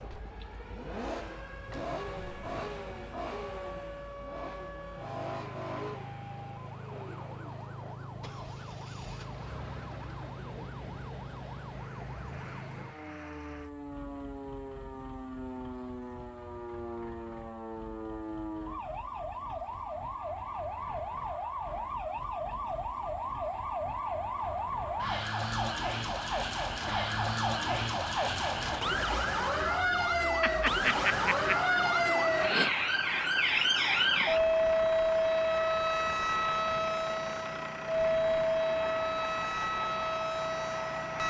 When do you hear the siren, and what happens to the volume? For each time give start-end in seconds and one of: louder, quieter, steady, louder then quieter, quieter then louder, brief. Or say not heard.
0.0-41.2 louder.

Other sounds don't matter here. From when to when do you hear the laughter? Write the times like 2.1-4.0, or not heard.
30.4-31.6.